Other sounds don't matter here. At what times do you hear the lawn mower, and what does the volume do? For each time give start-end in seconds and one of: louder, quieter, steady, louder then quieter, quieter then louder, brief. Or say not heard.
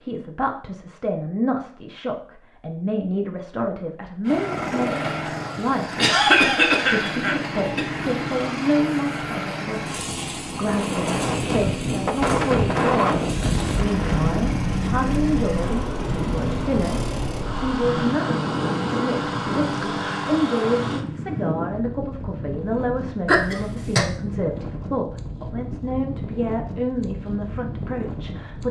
4.2-21.1 steady.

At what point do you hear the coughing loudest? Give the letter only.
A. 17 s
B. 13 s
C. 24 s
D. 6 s
D.